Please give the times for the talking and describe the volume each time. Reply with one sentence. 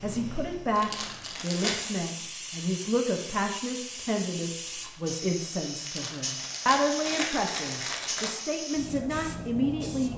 The talking can be heard from 0.0 to 10.1 s, at a steady volume.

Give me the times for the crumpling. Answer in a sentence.
The crumpling can be heard from 0.8 to 2.0 s and from 5.8 to 8.4 s.